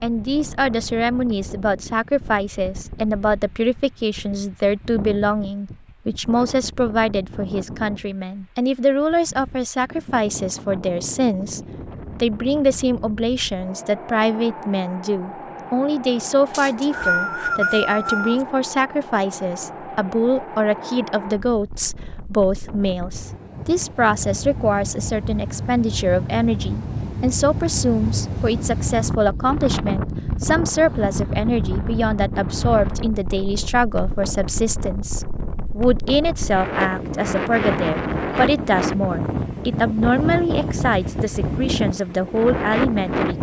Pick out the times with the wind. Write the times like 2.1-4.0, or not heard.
0.0-43.3.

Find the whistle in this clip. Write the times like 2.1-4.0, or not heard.
16.5-18.4.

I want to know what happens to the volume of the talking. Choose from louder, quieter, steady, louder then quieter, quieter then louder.
steady.